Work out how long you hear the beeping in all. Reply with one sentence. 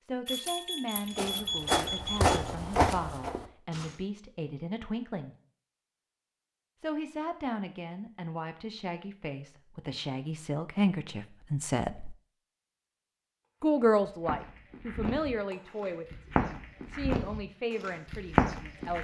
The beeping can be heard for 2 seconds in total.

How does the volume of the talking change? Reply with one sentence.
The volume of the talking goes up, then down.